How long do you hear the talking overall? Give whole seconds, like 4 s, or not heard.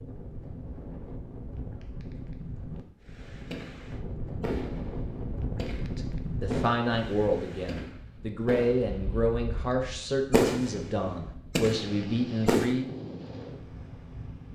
7 s.